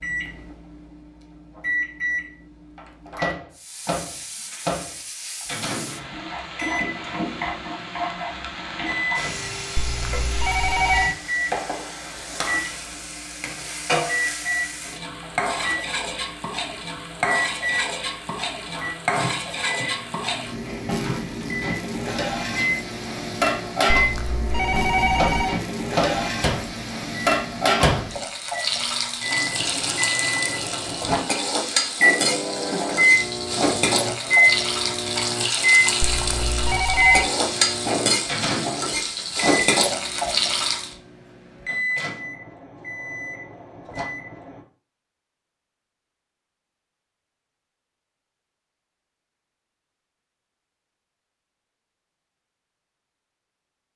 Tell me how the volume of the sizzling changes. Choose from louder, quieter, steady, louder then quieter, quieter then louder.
louder.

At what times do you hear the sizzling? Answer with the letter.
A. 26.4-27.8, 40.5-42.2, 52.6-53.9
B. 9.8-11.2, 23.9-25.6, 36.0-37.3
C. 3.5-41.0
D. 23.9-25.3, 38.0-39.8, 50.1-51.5
C.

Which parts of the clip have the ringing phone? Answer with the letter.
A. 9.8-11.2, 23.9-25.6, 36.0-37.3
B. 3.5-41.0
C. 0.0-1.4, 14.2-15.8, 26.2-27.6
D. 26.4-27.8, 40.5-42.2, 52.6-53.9
A.